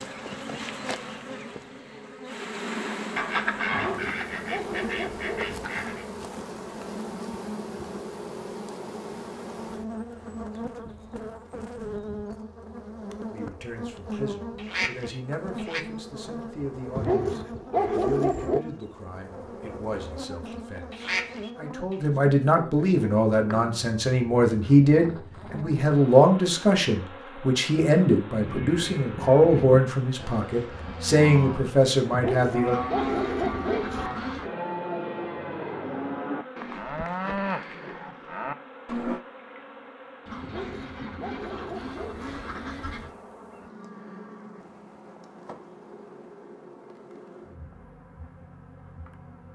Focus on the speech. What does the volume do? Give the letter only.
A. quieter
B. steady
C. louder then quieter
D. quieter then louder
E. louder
E.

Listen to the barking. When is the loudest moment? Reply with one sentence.
The loudest moment of the barking is at 18 seconds.